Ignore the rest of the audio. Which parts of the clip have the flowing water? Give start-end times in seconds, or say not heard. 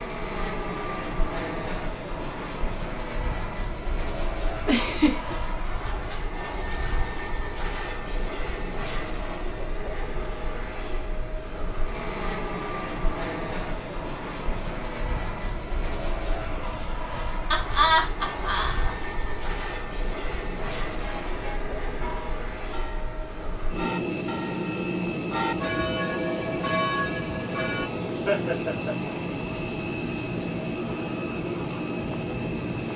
not heard.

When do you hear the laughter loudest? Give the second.
18 s.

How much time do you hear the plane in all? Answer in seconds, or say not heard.
33 s.